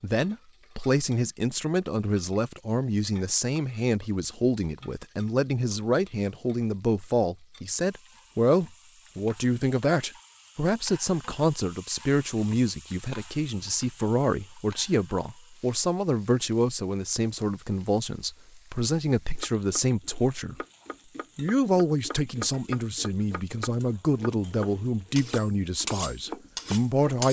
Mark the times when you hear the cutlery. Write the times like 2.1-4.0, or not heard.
25.1-27.2.